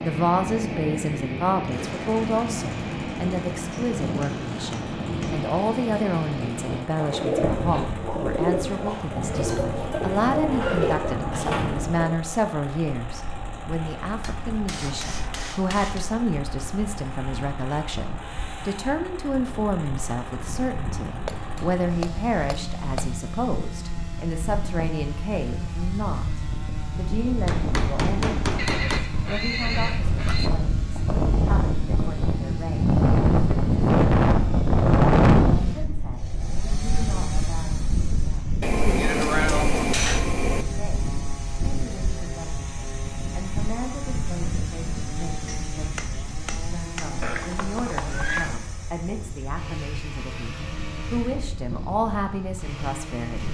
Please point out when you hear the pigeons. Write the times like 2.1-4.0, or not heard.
7.0-12.1.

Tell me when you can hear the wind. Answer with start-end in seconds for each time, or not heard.
0.0-53.4.